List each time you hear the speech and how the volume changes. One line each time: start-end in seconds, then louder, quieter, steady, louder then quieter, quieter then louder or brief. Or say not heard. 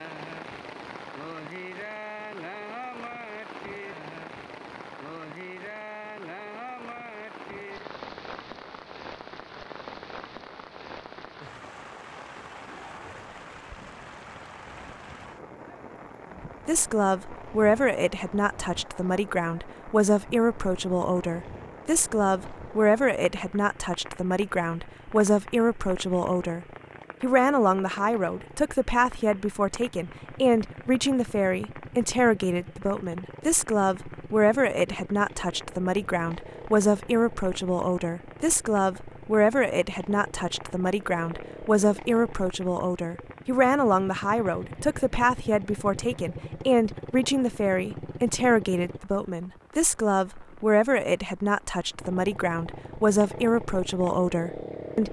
16.6-55.0 steady.